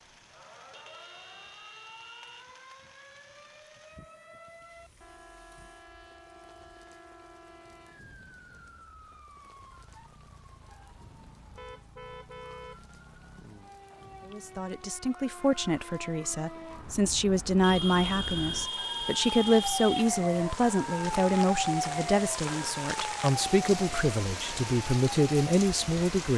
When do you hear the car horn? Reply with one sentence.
The car horn can be heard from 0.7 to 2.5 s, from 11.6 to 12.8 s and from 17.6 to 20.1 s.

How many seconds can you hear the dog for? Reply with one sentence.
You can't hear the dog here.